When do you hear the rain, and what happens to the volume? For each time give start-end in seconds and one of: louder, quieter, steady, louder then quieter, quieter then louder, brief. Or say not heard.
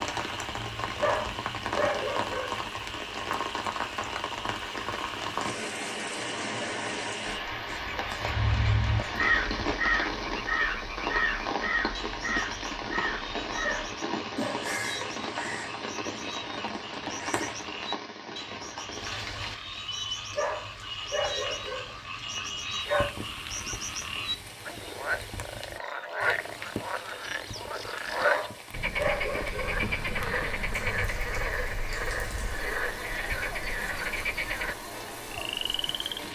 0.0-36.3 quieter.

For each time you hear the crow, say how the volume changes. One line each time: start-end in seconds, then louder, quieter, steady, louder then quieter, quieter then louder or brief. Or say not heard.
8.2-17.7 quieter.